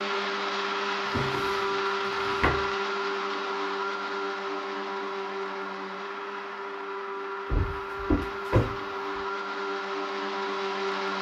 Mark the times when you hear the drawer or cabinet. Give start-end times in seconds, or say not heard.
1.1-2.6, 7.5-9.2.